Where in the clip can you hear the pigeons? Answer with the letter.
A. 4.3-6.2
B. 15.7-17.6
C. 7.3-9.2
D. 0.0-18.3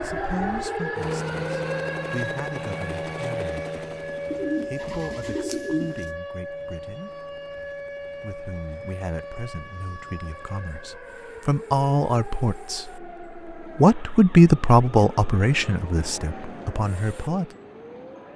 A.